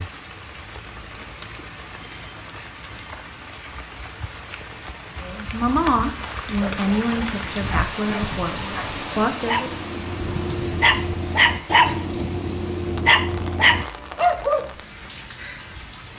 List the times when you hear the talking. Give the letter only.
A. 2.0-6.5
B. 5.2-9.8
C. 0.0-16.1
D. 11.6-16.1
B.